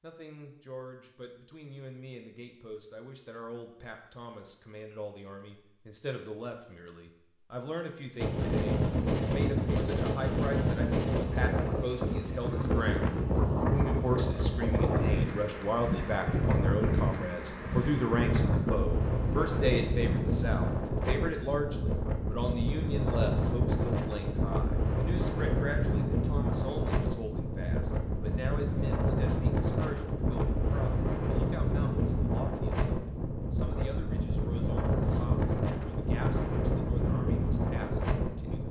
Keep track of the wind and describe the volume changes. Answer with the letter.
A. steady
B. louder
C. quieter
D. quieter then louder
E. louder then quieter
A.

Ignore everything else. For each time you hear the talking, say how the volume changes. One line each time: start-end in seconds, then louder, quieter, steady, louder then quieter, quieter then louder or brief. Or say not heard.
0.0-38.6 louder then quieter.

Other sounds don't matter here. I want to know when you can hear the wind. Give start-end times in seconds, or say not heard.
8.2-38.6.